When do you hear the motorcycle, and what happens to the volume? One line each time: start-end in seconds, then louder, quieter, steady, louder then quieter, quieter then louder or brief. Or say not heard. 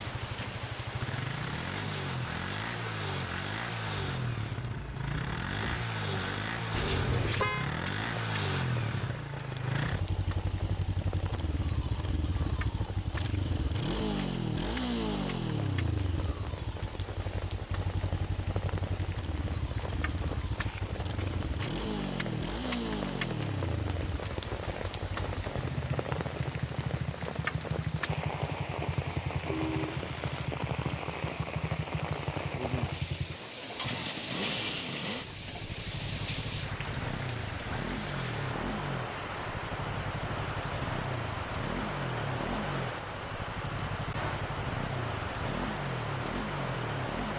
0.0-47.3 steady.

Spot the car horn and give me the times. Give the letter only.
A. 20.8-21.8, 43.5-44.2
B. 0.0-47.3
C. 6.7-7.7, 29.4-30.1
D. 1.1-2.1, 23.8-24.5
C.